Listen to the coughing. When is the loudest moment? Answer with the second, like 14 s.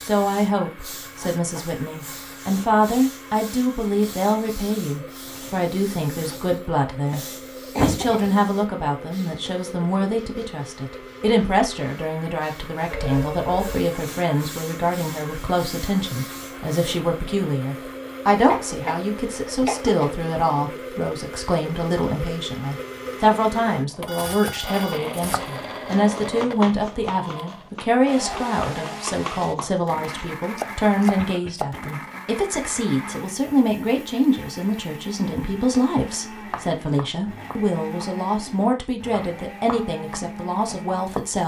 8 s.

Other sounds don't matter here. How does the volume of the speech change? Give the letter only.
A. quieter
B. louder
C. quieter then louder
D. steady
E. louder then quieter
D.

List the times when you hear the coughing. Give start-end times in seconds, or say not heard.
7.1-8.3, 18.4-20.1, 31.1-31.8.